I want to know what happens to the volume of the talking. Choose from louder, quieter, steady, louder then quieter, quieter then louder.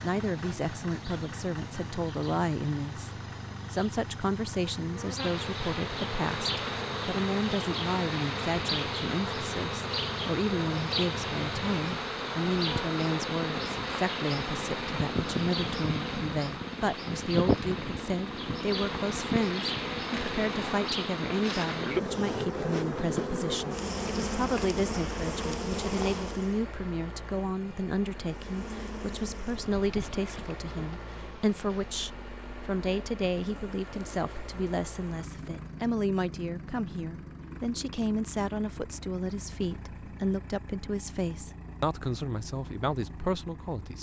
steady.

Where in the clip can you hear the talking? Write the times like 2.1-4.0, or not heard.
0.0-3.1, 3.7-43.9.